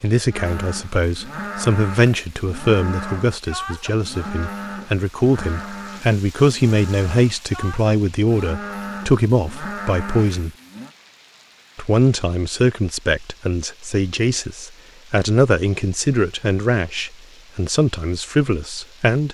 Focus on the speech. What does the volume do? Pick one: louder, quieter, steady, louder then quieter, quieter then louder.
steady.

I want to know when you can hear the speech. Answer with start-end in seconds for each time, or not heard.
0.0-10.5, 11.8-19.2.